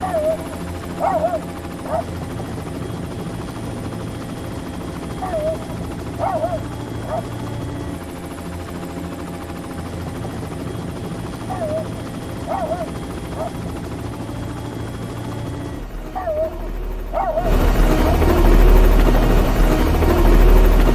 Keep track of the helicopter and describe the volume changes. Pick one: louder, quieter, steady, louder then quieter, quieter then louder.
louder.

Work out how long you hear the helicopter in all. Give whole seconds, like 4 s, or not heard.
21 s.